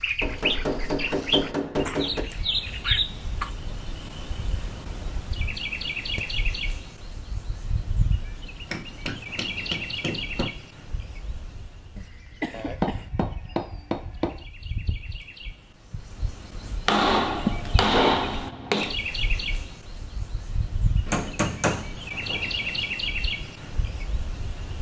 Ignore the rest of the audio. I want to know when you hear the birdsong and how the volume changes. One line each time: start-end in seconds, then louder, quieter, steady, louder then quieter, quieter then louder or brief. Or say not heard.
0.0-24.7 quieter then louder.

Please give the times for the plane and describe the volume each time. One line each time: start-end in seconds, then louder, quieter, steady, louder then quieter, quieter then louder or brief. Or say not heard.
not heard.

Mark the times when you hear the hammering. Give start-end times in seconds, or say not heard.
0.2-2.2, 8.7-10.5, 12.5-14.4, 16.9-18.9, 21.1-22.5.